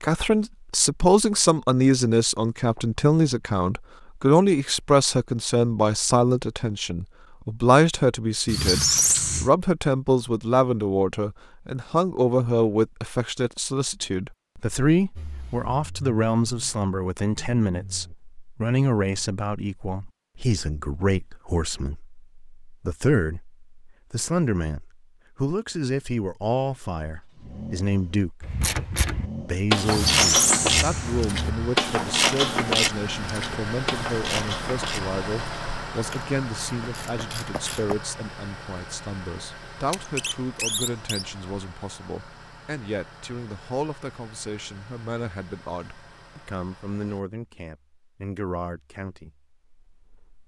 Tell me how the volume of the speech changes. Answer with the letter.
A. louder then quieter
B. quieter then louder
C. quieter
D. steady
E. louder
C.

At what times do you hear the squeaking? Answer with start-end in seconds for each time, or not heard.
8.4-9.5, 29.9-31.4, 39.9-41.2.